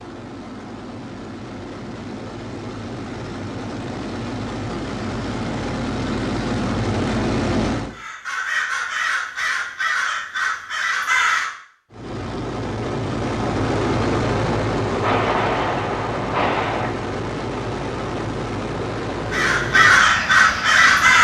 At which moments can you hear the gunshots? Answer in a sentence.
The gunshots can be heard from 15.0 to 16.9 s.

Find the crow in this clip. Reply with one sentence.
You can hear the crow from 7.9 to 11.5 s and from 19.3 to 21.1 s.